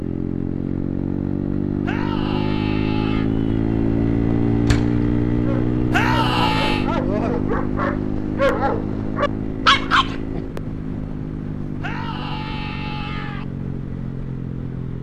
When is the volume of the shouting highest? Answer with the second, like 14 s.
6 s.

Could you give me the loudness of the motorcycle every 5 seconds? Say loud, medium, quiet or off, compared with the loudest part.
loud, loud, medium.